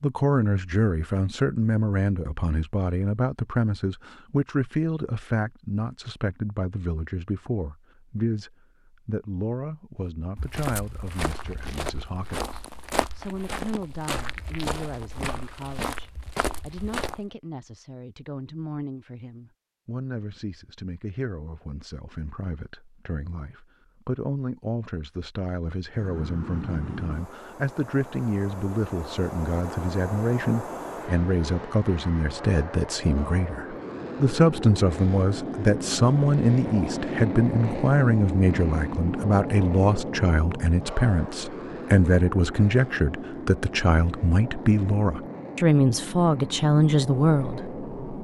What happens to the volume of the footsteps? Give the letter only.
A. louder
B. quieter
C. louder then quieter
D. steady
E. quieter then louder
D.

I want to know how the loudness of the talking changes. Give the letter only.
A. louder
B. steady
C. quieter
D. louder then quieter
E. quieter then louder
E.